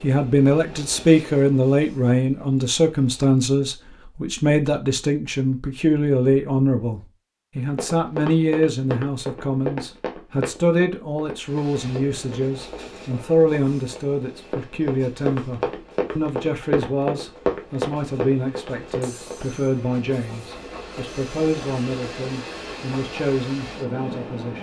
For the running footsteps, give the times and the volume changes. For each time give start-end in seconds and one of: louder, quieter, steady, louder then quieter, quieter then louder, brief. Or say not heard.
7.7-19.5 quieter then louder.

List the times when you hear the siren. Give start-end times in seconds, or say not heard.
not heard.